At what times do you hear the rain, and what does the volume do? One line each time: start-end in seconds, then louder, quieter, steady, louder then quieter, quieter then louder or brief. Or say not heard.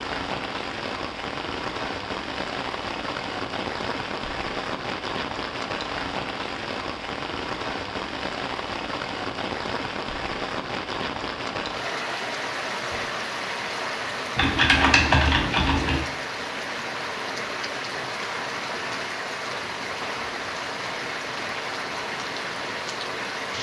0.0-23.5 steady.